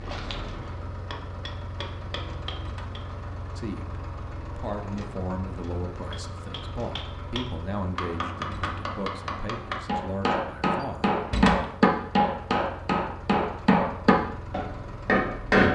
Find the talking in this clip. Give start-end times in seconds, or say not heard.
3.5-11.2.